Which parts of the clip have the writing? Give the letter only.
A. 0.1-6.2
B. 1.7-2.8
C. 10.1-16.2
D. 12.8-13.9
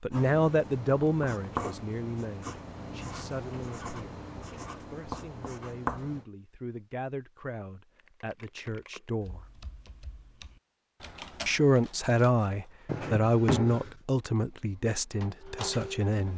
A.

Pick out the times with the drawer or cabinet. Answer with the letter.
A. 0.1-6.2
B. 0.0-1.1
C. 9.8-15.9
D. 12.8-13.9
D.